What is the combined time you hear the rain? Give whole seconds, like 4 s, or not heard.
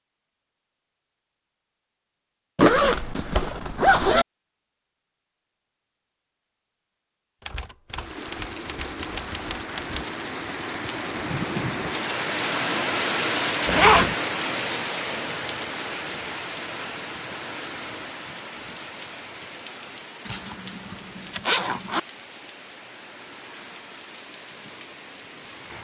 18 s.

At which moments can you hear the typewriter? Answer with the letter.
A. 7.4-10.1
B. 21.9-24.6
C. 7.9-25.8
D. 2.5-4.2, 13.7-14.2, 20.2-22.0
A.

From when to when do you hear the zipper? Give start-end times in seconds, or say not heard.
2.5-4.2, 13.7-14.2, 20.2-22.0.